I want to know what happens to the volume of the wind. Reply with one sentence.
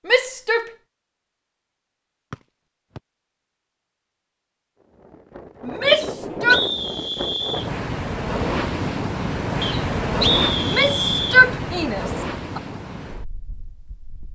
The volume of the wind goes up, then down.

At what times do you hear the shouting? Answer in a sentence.
You can hear the shouting from 0.1 to 0.7 s, from 5.7 to 6.6 s and from 10.6 to 12.6 s.